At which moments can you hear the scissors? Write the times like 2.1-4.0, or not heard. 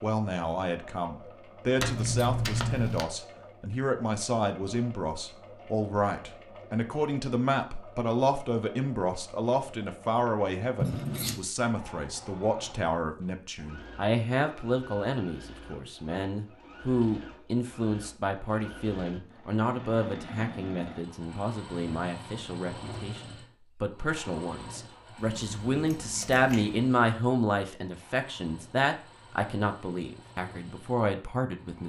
1.8-3.0, 10.8-11.4, 25.1-26.9.